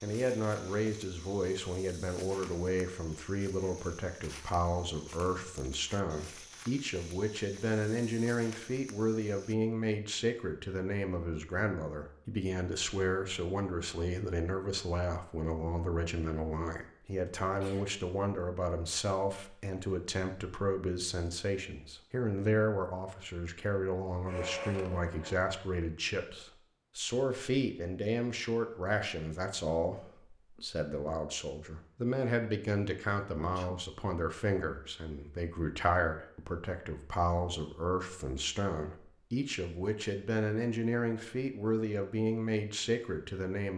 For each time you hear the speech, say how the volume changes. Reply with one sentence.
You can hear the speech from 0.0 to 43.7 s, at a steady volume.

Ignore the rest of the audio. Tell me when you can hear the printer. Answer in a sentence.
The printer can be heard from 23.9 to 25.4 s.